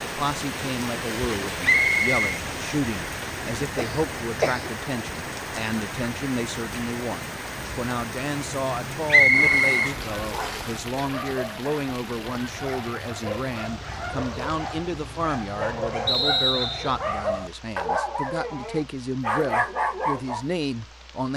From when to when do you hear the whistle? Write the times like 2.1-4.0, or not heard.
1.6-2.4, 9.1-10.7, 16.1-16.9.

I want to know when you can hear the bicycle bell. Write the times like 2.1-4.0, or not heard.
not heard.